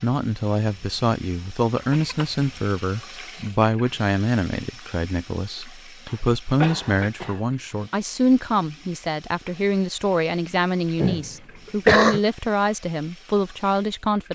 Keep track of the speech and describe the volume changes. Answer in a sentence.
The loudness of the speech stays about the same.